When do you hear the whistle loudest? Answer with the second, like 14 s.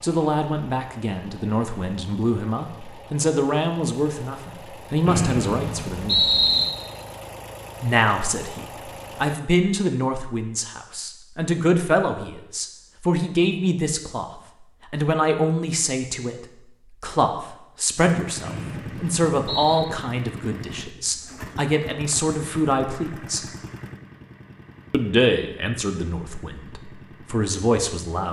6 s.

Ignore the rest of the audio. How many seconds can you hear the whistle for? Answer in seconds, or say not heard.
3 s.